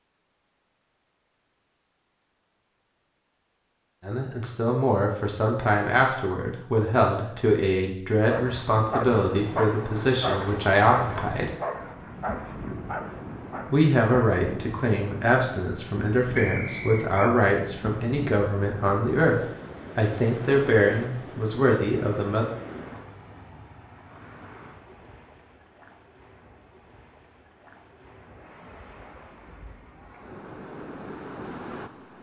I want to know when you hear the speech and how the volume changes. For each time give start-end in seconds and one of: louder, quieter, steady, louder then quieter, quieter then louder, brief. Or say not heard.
4.0-11.5 steady
13.7-22.4 steady.